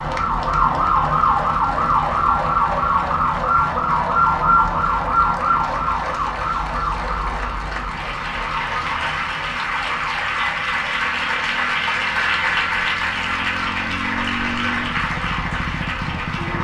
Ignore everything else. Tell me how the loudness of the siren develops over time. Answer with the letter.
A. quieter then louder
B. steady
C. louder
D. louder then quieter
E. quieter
E.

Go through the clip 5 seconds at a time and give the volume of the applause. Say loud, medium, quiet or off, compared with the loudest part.
quiet, medium, loud, medium.